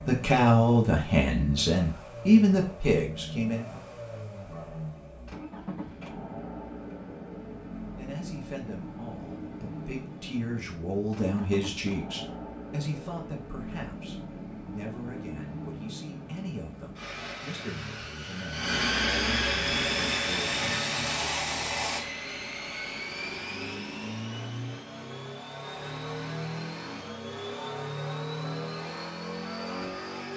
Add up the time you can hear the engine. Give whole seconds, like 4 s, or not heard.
30 s.